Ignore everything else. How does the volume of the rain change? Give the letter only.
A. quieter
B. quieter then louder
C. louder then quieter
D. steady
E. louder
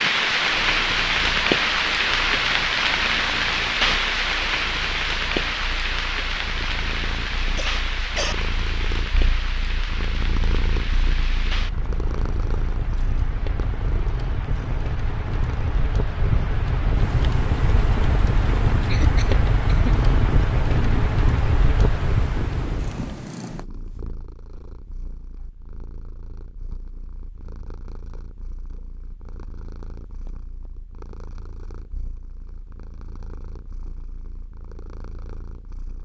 B.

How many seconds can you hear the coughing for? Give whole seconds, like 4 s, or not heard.
2 s.